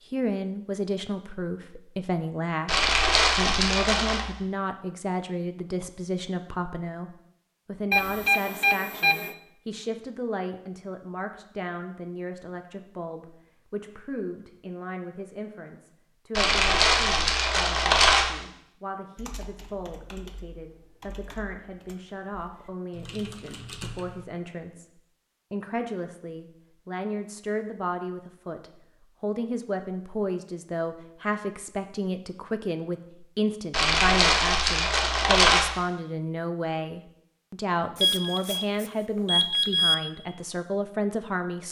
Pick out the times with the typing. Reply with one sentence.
The typing can be heard from 19.1 to 24.2 s.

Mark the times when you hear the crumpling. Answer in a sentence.
You can hear the crumpling from 2.6 to 4.2 s, from 16.4 to 18.3 s and from 33.7 to 35.6 s.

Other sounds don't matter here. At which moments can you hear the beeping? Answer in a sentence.
You can hear the beeping from 7.9 to 9.3 s and from 38.0 to 40.0 s.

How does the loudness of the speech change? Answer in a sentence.
The volume of the speech goes down, then up.